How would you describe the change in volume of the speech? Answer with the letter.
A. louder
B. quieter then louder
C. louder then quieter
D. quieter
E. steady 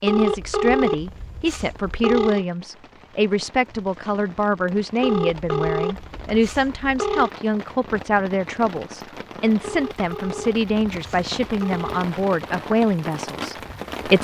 E.